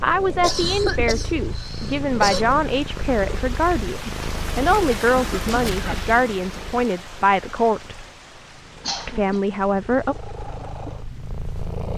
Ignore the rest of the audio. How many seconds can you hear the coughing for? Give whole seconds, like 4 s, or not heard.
5 s.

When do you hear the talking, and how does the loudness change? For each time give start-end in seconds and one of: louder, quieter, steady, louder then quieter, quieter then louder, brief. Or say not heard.
0.0-8.0 steady
9.1-10.2 brief.